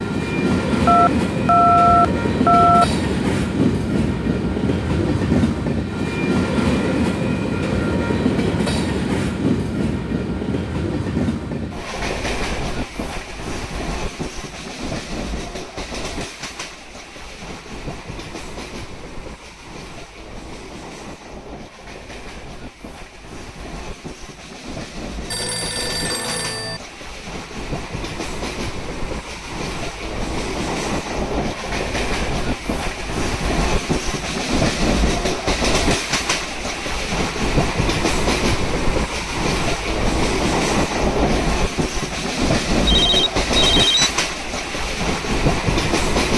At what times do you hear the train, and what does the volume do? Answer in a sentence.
The train can be heard from 0.0 to 46.3 s, getting quieter then louder.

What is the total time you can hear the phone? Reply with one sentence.
The phone can be heard for 5 seconds in total.